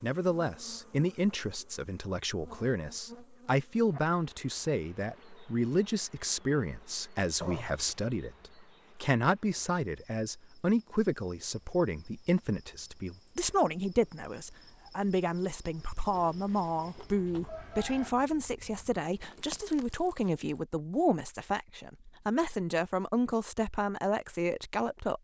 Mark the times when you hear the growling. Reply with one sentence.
You can hear the growling from 7.4 to 8.0 s.